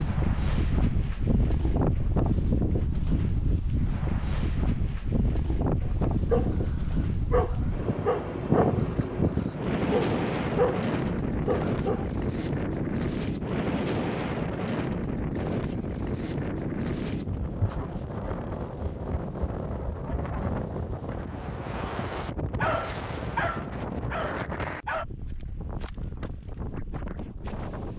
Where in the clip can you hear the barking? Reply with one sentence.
The barking can be heard from 5.8 to 12.1 s and from 22.6 to 25.1 s.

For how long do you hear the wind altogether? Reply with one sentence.
The wind can be heard for 28 seconds in total.